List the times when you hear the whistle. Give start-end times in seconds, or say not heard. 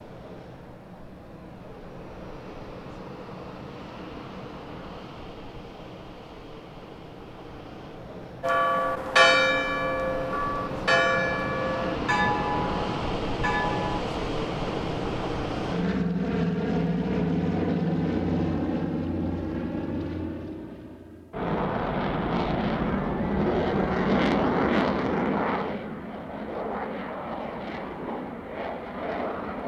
not heard.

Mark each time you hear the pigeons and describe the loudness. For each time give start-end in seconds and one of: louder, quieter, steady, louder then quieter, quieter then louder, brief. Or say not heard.
not heard.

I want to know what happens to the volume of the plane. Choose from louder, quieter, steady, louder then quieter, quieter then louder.
louder.